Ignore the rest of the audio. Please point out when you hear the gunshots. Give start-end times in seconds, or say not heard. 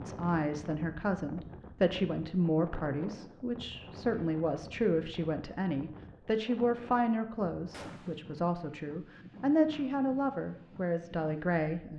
7.7-8.2.